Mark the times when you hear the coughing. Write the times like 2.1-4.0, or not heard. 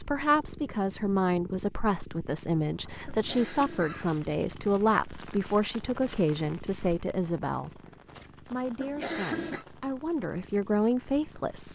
3.0-4.2, 8.8-9.7.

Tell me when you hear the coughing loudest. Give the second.
9 s.